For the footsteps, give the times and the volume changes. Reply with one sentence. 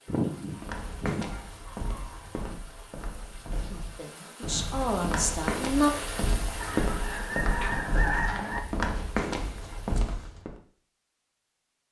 You can hear the footsteps from 0.5 to 10.6 s, getting louder.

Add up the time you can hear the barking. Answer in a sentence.
You can't hear the barking here.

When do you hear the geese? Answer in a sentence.
You can hear the geese from 0.1 to 2.6 s and from 6.6 to 8.6 s.